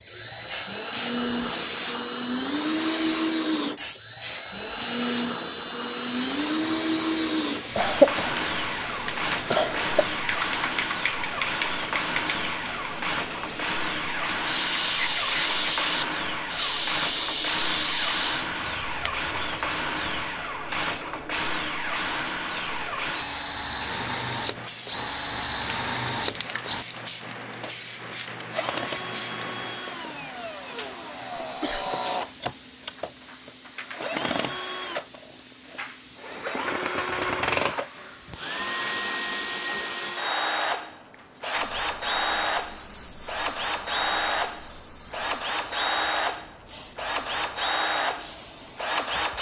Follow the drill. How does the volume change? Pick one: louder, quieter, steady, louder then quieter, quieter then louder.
steady.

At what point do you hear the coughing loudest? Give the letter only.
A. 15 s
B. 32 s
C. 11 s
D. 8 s
D.